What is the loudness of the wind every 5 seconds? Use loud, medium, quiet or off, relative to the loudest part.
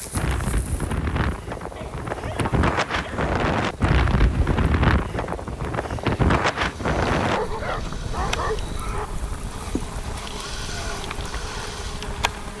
loud, loud, quiet.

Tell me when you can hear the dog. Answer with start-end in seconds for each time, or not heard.
1.6-3.4, 7.2-9.1.